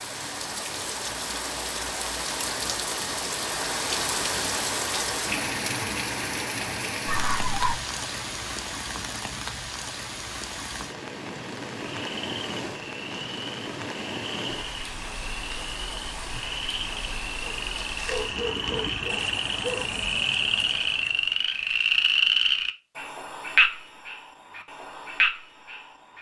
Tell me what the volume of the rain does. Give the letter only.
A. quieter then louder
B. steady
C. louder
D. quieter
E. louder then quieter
D.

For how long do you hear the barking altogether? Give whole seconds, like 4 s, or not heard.
3 s.